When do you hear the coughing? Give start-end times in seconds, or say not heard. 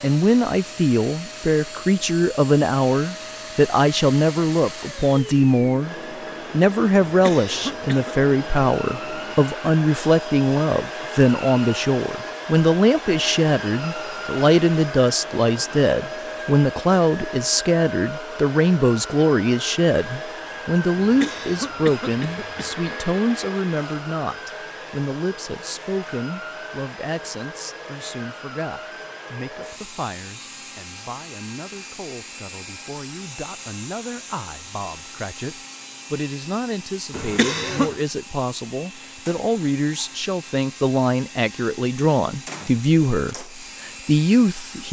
7.0-8.2, 20.9-22.8, 37.1-38.0.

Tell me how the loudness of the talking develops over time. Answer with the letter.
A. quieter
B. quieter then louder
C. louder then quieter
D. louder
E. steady
B.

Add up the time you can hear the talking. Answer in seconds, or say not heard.
45 s.